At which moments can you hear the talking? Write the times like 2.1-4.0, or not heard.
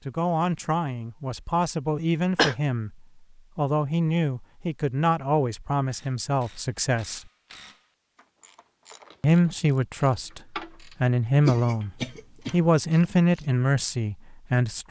0.1-7.3, 9.2-14.8.